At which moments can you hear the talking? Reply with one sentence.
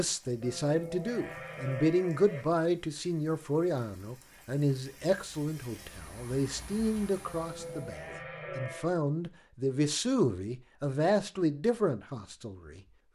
The talking can be heard from 0.0 to 12.8 s.